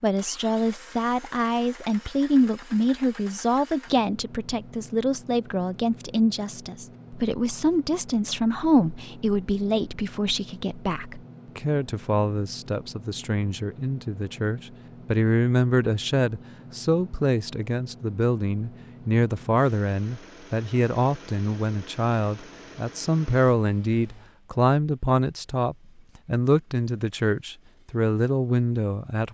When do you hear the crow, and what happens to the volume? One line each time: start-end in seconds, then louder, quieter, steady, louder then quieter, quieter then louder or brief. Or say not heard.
not heard.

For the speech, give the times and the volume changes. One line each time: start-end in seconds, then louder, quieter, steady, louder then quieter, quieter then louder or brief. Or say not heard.
0.0-29.2 steady.